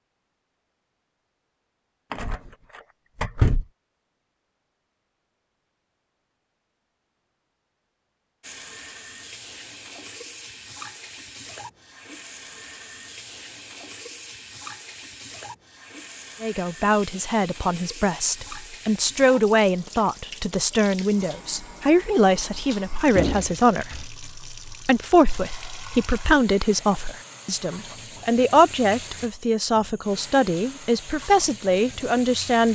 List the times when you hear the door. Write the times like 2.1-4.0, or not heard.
2.1-3.6, 23.1-24.1.